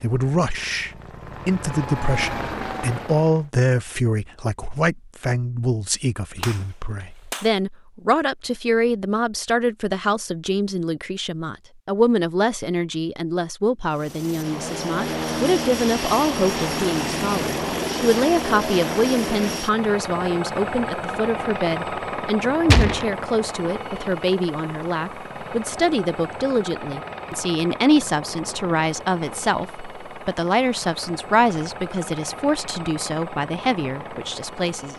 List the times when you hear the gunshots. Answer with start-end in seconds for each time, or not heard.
6.4-7.5, 22.6-23.1.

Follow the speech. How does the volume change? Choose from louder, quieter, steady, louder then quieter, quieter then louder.
steady.